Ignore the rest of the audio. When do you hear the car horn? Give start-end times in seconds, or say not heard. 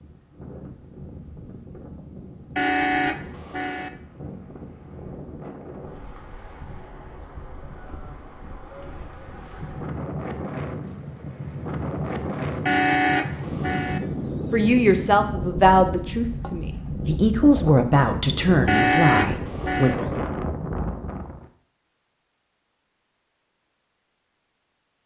2.5-3.9, 12.7-14.0, 18.6-19.9.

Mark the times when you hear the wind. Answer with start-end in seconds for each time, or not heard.
0.0-21.4.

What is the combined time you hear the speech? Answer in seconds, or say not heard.
6 s.